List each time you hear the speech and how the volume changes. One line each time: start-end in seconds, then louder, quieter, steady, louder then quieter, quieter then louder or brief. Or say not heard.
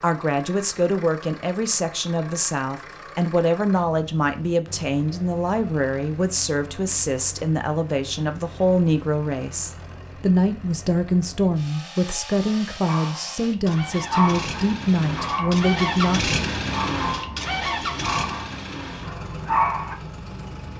0.0-16.3 steady.